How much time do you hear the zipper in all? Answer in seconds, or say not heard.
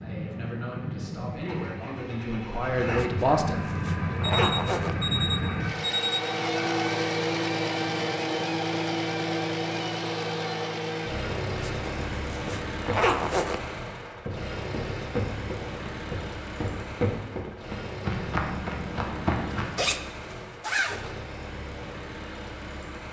6 s.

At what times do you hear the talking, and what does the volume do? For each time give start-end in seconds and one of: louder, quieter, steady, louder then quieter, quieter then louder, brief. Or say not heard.
0.0-4.5 louder.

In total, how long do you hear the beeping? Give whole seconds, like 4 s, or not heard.
2 s.